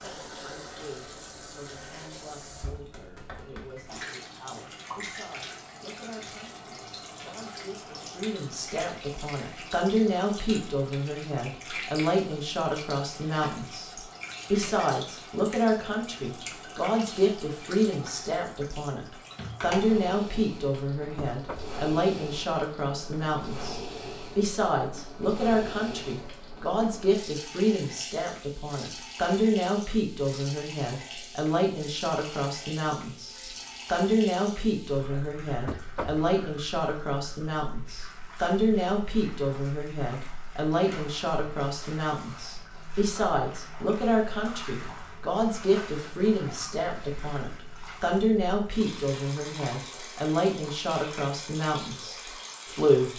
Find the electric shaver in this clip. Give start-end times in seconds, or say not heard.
not heard.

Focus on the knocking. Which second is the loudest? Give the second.
36 s.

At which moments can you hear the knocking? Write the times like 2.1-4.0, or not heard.
21.1-21.8, 35.6-36.2.